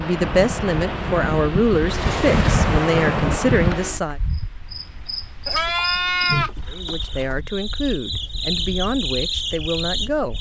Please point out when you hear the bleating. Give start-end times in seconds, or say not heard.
5.5-7.3.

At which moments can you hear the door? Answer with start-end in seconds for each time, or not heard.
1.9-2.7.